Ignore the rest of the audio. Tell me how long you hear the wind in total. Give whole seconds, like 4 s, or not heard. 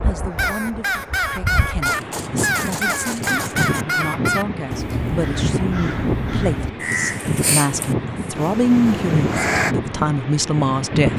11 s.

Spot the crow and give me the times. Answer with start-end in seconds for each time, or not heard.
0.3-9.8.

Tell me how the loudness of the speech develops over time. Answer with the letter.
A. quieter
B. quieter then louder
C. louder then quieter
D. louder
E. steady
D.